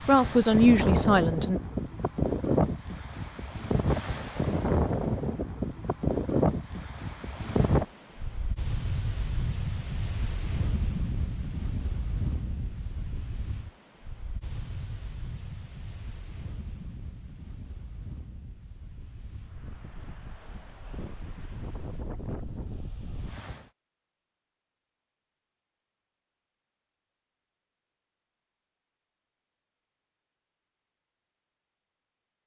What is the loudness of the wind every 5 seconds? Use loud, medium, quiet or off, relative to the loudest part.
loud, loud, medium, quiet, quiet, off, off.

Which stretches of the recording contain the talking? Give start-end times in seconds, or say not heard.
0.1-1.6.